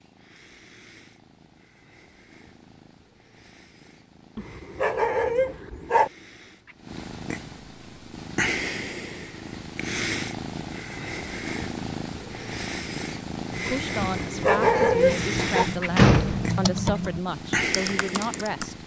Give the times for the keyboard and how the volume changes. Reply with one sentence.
You can hear the keyboard from 13.5 to 18.7 s, getting louder then quieter.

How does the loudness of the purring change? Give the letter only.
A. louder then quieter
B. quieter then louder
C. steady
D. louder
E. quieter
D.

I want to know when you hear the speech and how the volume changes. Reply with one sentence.
The speech can be heard from 13.7 to 18.8 s, at a steady volume.